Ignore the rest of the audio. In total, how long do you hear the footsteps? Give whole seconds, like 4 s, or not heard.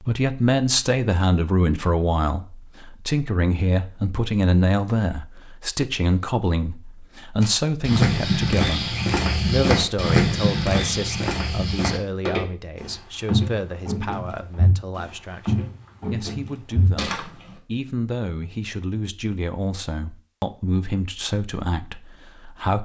10 s.